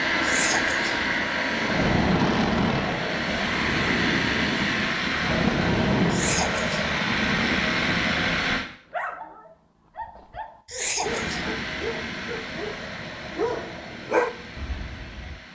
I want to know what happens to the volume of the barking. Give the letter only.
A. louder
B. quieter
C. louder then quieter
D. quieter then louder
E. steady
A.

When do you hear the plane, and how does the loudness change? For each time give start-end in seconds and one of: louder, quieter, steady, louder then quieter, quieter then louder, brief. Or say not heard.
0.0-8.7 steady
11.0-15.5 quieter.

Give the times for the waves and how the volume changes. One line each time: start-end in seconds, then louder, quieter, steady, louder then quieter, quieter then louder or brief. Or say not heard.
not heard.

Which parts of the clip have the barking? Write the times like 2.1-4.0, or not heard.
8.9-15.4.